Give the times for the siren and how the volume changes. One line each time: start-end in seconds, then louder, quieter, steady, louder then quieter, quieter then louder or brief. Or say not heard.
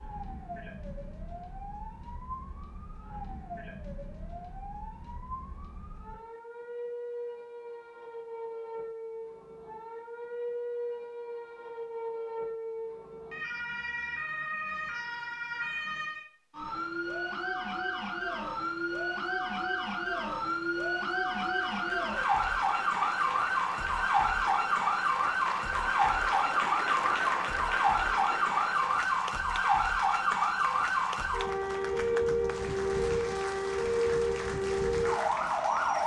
0.0-36.0 louder.